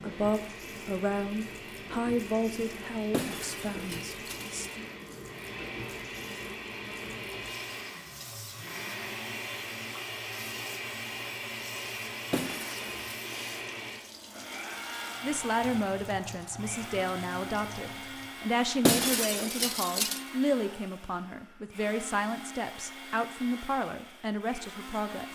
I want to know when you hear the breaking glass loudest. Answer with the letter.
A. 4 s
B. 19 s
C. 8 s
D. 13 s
B.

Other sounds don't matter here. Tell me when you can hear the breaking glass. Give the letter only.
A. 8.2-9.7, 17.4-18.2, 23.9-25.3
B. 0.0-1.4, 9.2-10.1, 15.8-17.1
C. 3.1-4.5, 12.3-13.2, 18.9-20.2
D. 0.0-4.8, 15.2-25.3
C.